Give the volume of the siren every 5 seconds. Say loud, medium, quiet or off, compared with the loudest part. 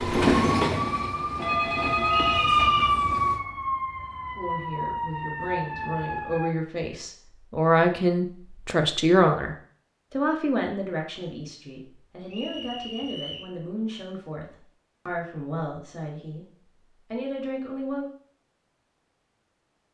loud, medium, off, off.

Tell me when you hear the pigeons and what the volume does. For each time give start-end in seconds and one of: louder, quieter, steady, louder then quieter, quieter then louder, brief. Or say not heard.
not heard.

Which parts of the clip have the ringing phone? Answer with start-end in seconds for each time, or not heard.
1.4-2.6.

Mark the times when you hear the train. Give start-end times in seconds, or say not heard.
0.0-3.4.